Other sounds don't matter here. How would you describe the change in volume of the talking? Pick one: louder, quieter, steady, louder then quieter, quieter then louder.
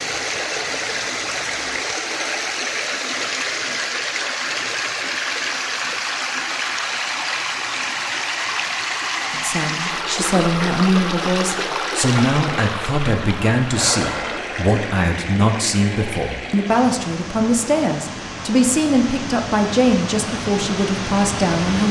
steady.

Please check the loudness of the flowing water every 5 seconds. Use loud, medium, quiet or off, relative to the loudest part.
loud, loud, loud, medium, loud.